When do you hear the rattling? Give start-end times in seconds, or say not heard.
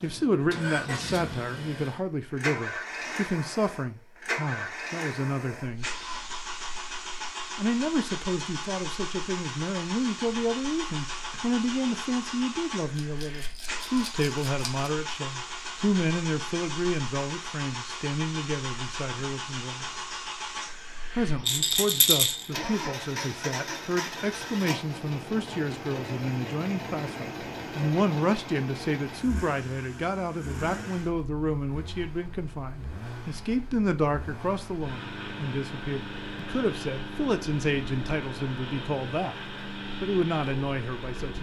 12.9-14.9, 21.4-22.5.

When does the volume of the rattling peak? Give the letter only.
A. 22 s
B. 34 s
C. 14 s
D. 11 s
A.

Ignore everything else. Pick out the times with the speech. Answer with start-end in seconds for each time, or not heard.
0.0-5.9, 7.5-19.9, 21.1-41.3.